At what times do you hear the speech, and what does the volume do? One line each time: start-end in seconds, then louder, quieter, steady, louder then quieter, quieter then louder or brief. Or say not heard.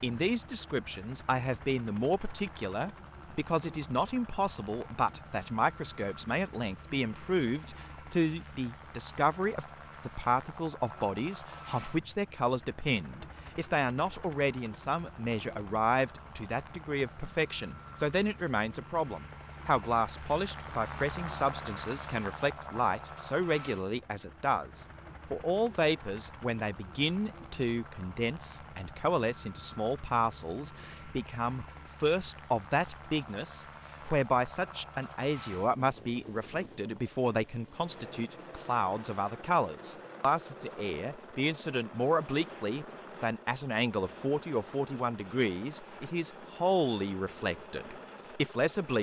0.0-48.9 steady.